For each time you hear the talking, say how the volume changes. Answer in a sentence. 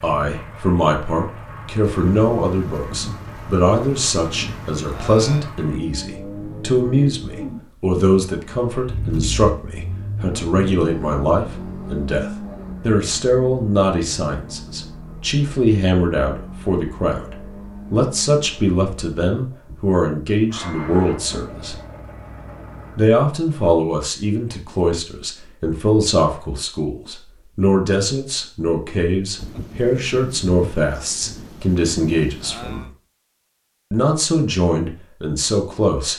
You can hear the talking from 0.0 to 21.8 s, at a steady volume; from 22.9 to 32.9 s, at a steady volume; and briefly from 33.9 to 36.1 s.